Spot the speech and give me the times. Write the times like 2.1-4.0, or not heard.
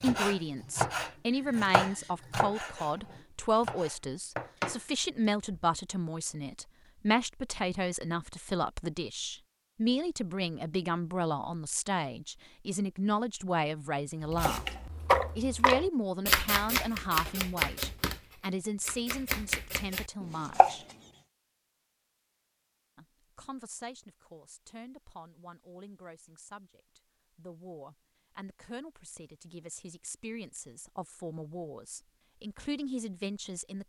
0.0-14.7, 15.3-20.9, 22.9-33.8.